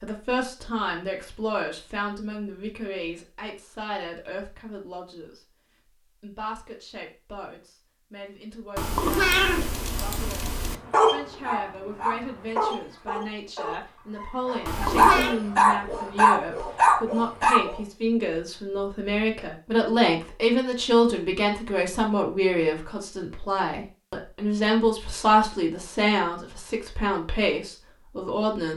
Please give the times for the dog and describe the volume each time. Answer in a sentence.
You can hear the dog from 10.9 to 17.8 s, getting quieter then louder.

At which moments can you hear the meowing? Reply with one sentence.
You can hear the meowing from 8.8 to 10.8 s and from 14.7 to 15.3 s.